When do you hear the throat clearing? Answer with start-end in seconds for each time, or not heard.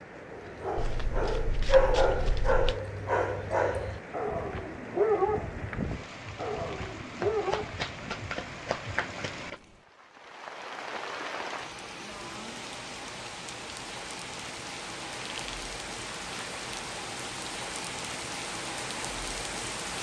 not heard.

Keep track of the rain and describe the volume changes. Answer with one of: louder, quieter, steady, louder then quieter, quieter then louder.
louder.